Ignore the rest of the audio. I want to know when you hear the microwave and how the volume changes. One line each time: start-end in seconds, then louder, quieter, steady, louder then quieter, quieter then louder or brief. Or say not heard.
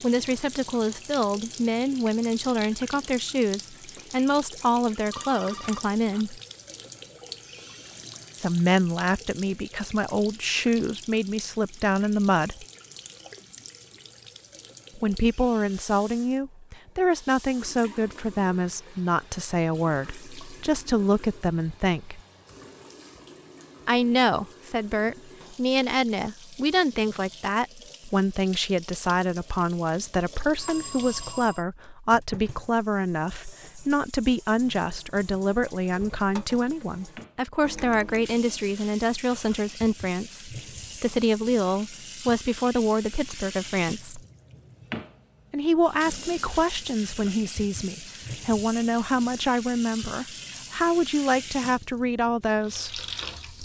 not heard.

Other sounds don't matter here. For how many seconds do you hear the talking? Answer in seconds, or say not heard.
46 s.